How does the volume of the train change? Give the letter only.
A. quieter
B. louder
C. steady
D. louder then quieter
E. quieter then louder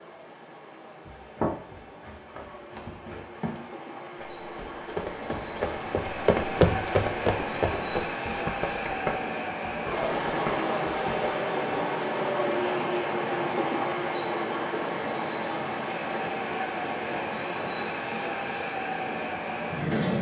B.